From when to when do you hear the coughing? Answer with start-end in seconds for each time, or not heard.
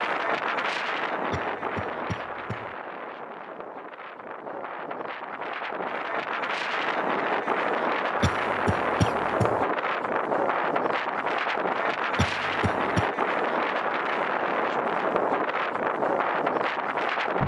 1.3-2.8, 8.2-9.7, 12.2-13.1.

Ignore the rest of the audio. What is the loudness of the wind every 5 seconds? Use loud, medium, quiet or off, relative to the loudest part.
medium, loud, loud, loud.